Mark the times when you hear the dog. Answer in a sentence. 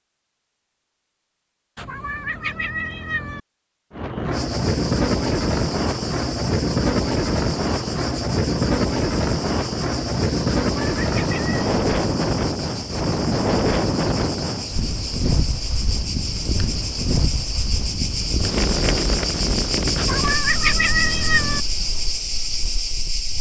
You can't hear the dog here.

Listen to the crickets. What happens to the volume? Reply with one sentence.
The volume of the crickets goes up.